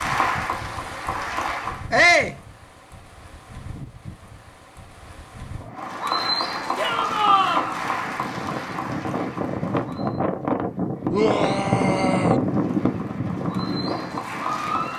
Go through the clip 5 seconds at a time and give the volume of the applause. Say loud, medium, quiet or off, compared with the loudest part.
loud, loud, medium.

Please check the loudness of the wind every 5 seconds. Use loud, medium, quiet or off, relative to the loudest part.
quiet, medium, loud.